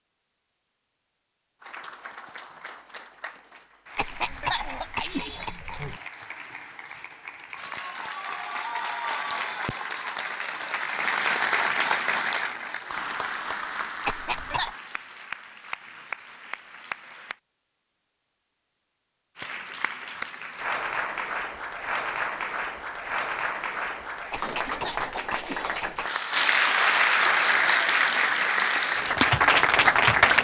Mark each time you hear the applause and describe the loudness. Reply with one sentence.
You can hear the applause from 1.6 to 17.4 s, getting louder then quieter; and from 19.4 to 30.3 s, getting louder.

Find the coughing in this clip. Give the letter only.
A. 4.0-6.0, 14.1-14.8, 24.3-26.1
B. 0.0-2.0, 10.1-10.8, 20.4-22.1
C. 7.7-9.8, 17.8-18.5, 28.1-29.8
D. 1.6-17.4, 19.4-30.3
A.